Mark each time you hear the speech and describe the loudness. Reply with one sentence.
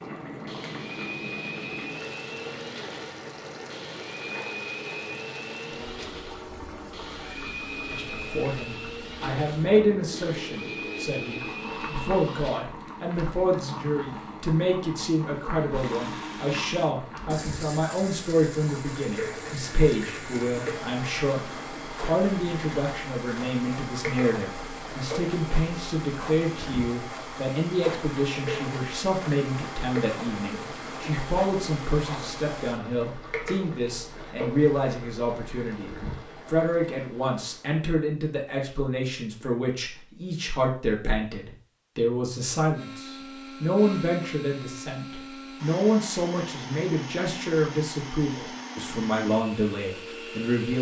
The speech can be heard from 7.9 to 50.7 s, at a steady volume.